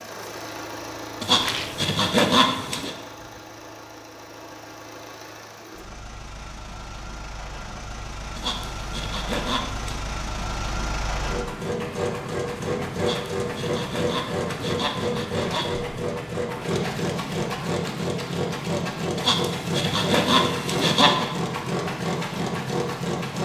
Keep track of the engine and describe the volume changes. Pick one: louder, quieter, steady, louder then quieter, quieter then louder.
louder.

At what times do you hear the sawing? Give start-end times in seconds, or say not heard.
1.2-3.0, 8.3-10.0, 12.9-15.8, 19.1-21.3.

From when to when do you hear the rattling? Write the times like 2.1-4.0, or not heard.
1.4-1.9.